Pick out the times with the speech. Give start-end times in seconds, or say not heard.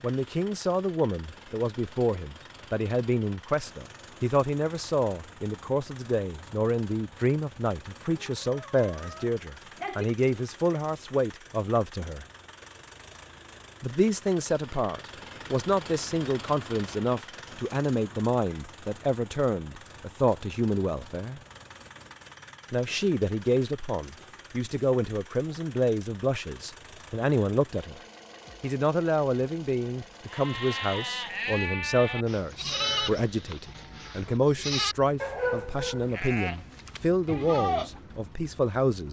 0.0-12.2, 13.8-21.4, 22.7-28.0, 28.6-39.0.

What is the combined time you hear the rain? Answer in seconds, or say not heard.
not heard.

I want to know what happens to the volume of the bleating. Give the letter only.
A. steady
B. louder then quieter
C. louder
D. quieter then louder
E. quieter
A.